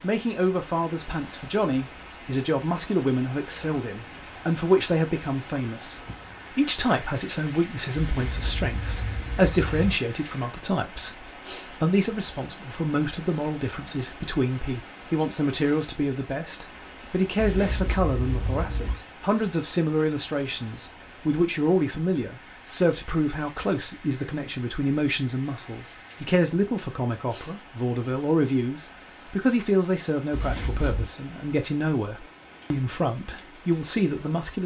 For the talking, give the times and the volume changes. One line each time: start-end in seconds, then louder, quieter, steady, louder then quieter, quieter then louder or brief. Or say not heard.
0.0-34.6 steady.